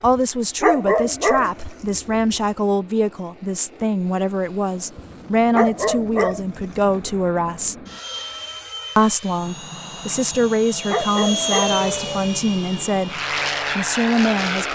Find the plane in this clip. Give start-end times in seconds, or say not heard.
0.0-14.7.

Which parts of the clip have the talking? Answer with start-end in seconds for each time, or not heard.
0.0-7.8, 8.9-14.7.